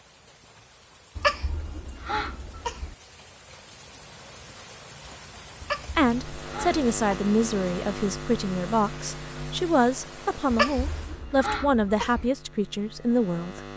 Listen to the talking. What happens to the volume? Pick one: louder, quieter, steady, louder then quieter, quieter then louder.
steady.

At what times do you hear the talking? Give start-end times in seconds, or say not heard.
6.0-13.6.